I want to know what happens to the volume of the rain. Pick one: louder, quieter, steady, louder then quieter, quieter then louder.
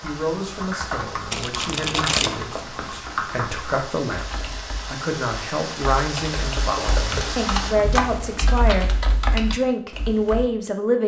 louder.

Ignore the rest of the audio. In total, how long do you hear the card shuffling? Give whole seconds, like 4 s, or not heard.
2 s.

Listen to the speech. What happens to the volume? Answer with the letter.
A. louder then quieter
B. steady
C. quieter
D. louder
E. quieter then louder
D.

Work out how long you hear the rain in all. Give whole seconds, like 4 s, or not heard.
8 s.